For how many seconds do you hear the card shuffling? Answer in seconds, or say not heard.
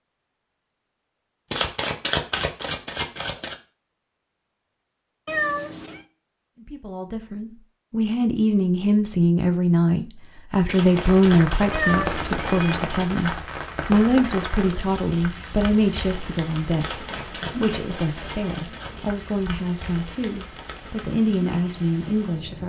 7 s.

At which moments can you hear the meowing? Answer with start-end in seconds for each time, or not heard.
5.2-6.0, 11.7-12.8.